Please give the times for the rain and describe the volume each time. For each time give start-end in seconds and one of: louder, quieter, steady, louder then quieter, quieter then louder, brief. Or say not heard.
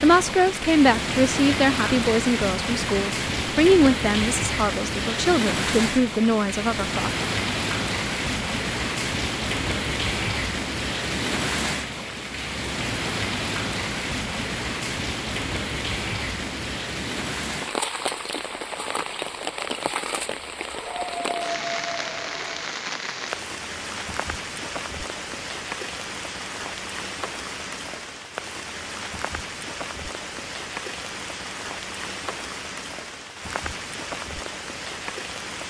0.0-35.6 quieter.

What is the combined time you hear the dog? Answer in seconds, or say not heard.
2 s.